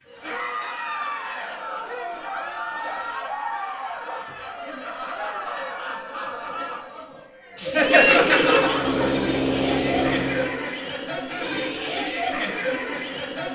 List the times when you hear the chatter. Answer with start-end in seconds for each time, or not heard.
0.1-13.5.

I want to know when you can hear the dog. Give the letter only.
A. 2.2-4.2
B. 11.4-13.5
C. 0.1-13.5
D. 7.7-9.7
A.